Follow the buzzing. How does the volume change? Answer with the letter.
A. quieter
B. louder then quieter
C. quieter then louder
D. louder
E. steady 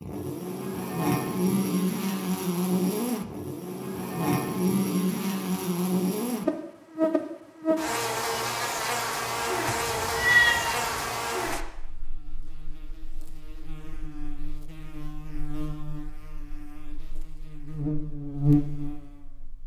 C.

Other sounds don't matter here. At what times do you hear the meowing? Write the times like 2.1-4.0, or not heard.
9.7-11.2.